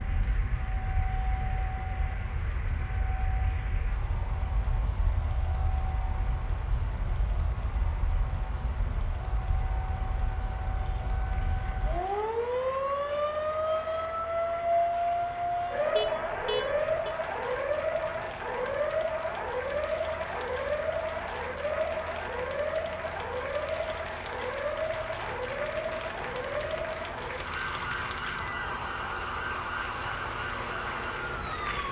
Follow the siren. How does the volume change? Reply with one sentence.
The loudness of the siren goes up, then down.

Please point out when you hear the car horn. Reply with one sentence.
You can hear the car horn from 15.9 to 17.1 s.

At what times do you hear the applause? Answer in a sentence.
The applause can be heard from 0.0 to 31.8 s.